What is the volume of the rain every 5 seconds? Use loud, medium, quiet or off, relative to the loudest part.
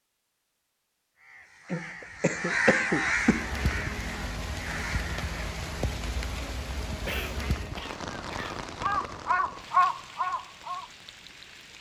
loud, loud, medium.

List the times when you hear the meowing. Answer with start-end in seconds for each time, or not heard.
not heard.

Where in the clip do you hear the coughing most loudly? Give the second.
3 s.